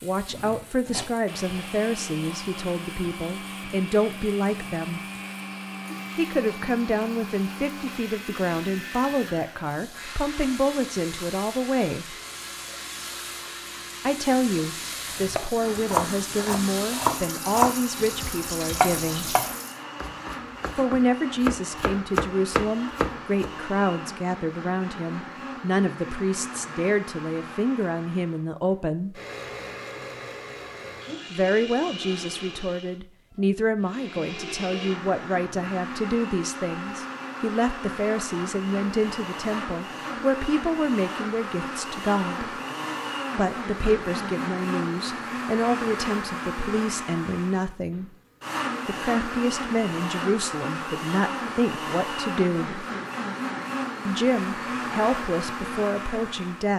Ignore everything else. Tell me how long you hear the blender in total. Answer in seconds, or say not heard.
57 s.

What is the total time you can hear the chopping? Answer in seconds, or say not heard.
8 s.